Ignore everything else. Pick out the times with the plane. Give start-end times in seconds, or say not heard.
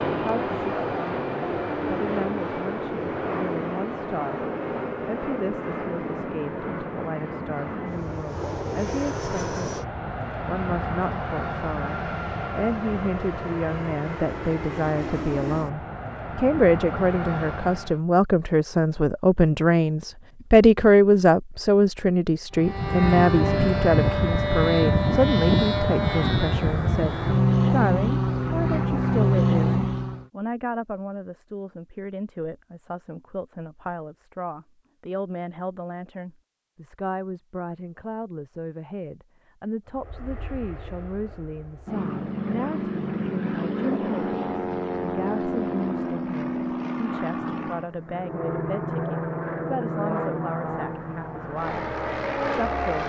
0.0-18.0, 22.6-30.2, 39.9-53.0.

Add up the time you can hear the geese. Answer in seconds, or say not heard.
not heard.